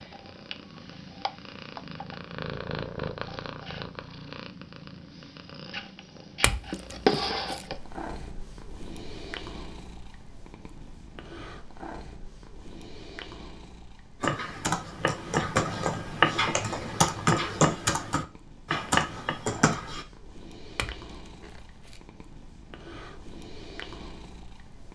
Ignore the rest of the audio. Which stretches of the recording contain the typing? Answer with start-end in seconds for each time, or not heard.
14.2-20.1.